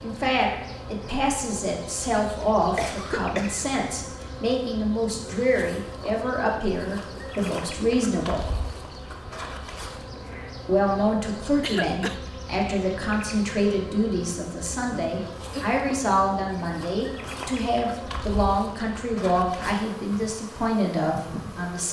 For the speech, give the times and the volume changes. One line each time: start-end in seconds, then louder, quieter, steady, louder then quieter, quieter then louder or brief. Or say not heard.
0.0-8.4 steady
10.7-21.8 steady.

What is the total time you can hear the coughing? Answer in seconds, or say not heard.
3 s.